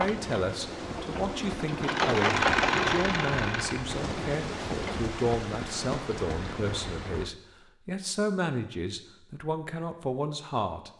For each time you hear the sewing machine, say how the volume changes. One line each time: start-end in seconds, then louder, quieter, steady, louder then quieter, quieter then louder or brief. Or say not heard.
0.0-5.0 louder then quieter.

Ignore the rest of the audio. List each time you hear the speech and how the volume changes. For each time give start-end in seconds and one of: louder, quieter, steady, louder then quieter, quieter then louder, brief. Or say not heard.
0.0-10.9 steady.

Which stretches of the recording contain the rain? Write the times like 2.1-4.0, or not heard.
0.0-7.3.